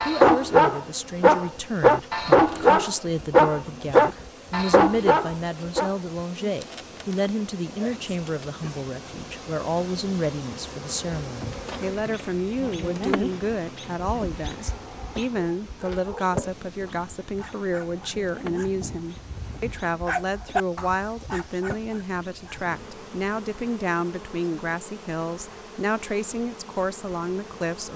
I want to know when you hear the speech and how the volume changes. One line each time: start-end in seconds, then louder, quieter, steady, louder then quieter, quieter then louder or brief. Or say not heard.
0.0-27.9 steady.